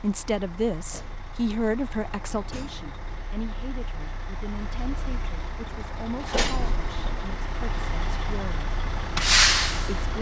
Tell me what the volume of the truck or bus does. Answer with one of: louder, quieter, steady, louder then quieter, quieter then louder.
louder.